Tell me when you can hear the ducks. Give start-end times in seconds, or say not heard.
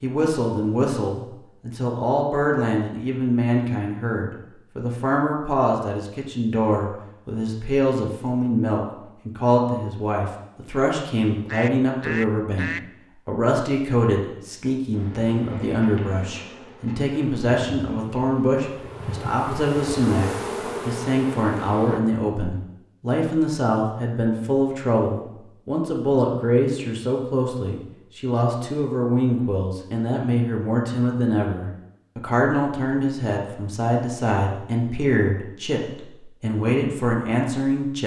11.3-12.8.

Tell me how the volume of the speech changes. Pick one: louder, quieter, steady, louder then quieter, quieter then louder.
steady.